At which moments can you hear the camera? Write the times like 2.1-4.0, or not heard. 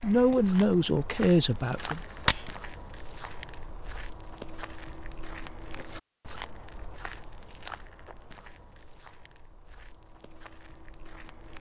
1.8-2.5.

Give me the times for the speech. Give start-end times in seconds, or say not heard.
0.0-2.0.